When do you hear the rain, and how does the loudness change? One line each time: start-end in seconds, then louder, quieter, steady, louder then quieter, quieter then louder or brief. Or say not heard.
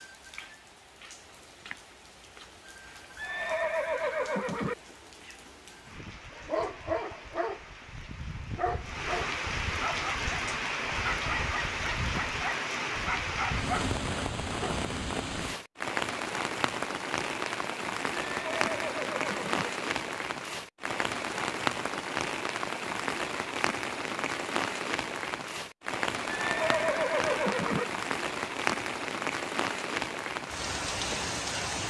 0.0-31.8 louder.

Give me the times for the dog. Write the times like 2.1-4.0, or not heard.
5.8-14.8.